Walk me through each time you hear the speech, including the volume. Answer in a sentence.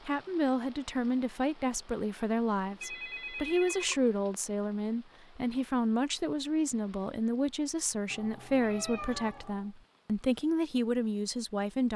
You can hear the speech from 0.1 to 11.9 s, at a steady volume.